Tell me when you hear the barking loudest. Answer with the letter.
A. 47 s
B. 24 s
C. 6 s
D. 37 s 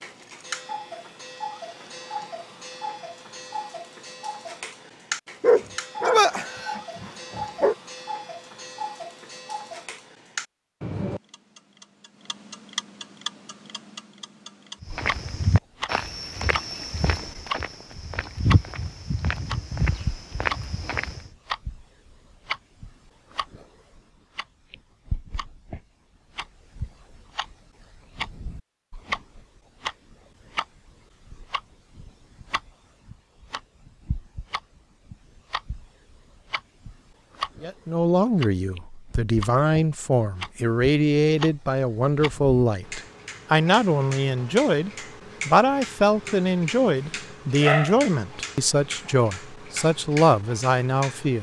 C.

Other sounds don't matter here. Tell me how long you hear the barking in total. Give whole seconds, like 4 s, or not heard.
4 s.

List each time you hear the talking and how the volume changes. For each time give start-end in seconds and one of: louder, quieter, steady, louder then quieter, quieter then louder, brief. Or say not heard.
37.6-51.3 steady.